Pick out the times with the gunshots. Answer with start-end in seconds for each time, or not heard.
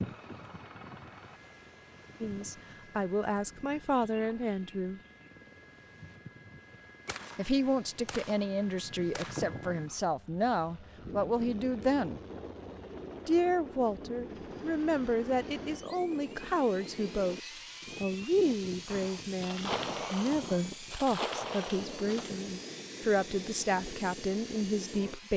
7.0-9.6, 18.9-22.4.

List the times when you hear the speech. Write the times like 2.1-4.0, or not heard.
2.2-5.0, 7.3-12.2, 13.2-25.3.